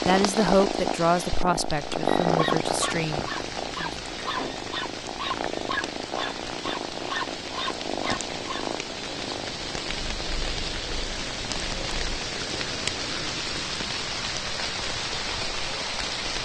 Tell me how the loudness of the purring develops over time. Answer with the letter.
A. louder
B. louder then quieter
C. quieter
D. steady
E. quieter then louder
C.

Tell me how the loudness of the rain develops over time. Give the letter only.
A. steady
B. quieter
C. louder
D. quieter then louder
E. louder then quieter
C.